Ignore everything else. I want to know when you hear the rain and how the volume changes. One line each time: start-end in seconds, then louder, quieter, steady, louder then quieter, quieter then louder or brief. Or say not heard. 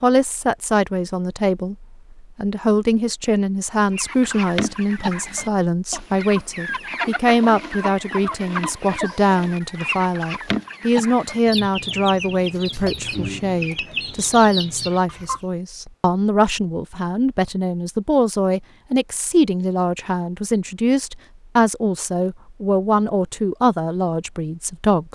not heard.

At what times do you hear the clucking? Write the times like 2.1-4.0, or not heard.
3.9-15.4.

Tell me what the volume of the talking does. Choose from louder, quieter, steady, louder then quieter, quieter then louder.
steady.